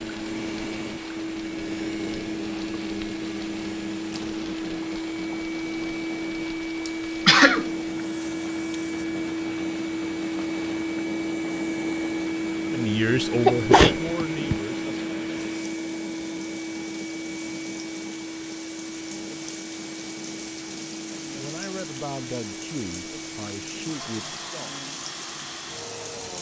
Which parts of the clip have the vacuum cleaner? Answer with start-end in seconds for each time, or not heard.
0.0-26.3.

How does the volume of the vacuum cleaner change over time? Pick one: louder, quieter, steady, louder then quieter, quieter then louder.
quieter.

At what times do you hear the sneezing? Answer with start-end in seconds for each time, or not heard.
6.8-7.7, 13.4-14.6.